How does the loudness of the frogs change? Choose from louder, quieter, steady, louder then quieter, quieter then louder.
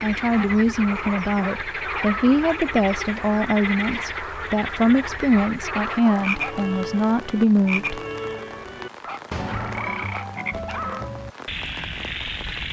steady.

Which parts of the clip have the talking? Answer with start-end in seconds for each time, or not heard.
0.0-8.0.